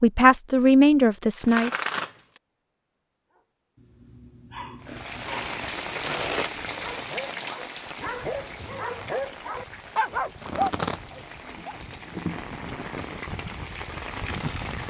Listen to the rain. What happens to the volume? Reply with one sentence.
The loudness of the rain goes down, then up.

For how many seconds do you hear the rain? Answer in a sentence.
You can hear the rain for 10 seconds altogether.